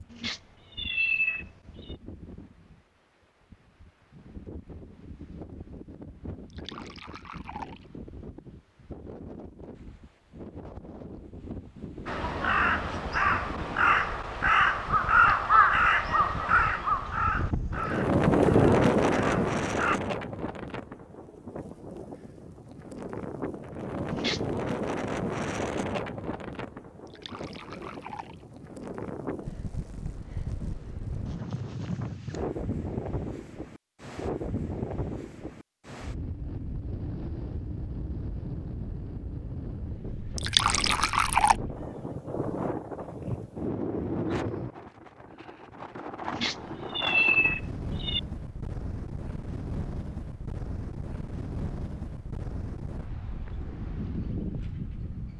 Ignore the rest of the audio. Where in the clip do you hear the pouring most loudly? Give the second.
41 s.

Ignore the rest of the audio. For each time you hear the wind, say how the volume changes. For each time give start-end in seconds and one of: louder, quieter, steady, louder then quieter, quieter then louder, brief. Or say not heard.
0.0-55.3 louder then quieter.